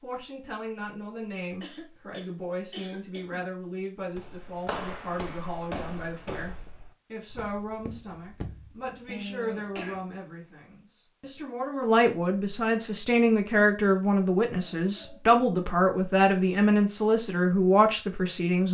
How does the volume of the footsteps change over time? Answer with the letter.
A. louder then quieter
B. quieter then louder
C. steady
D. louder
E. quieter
B.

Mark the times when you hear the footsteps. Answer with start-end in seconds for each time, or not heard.
4.1-8.9.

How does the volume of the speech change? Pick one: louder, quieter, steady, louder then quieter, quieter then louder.
louder.